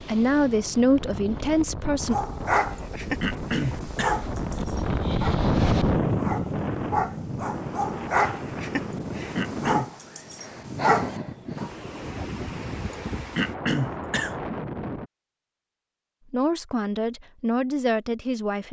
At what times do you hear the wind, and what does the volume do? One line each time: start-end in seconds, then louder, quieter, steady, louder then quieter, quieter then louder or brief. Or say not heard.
0.0-15.1 louder then quieter.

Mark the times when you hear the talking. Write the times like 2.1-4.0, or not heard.
0.0-2.1, 16.3-18.6.